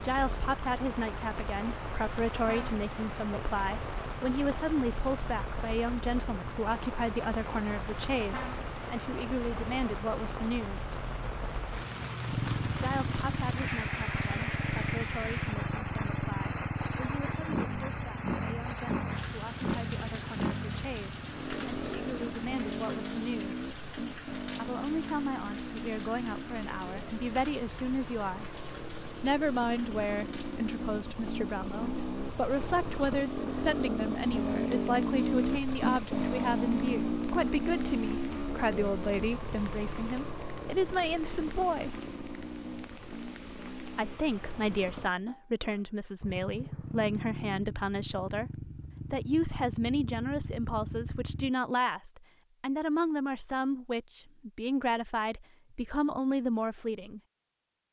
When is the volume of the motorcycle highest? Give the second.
35 s.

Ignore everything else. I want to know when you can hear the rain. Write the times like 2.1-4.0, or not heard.
0.0-45.0.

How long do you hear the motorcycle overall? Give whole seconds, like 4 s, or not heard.
39 s.